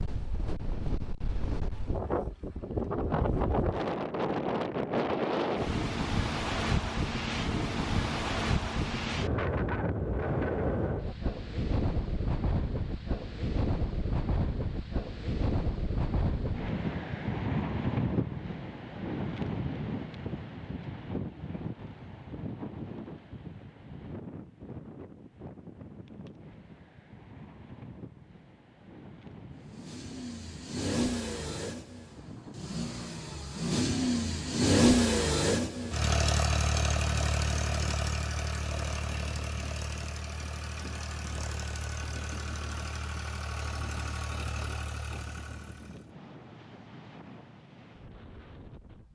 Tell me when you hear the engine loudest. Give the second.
35 s.